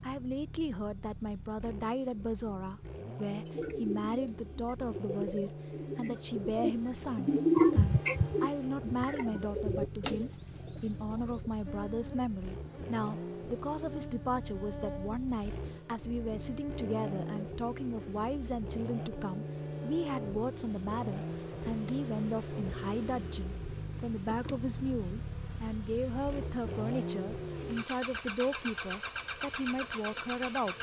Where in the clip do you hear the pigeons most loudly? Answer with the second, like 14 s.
8 s.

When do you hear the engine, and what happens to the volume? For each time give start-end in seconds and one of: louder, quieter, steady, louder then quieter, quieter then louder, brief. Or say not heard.
0.0-30.7 louder.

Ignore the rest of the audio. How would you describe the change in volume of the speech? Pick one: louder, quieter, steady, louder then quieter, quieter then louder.
steady.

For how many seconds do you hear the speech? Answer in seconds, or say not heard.
31 s.